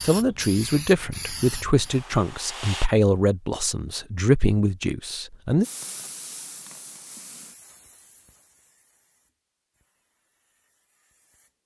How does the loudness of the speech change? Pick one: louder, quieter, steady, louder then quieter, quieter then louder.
quieter then louder.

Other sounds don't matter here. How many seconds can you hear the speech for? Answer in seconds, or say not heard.
6 s.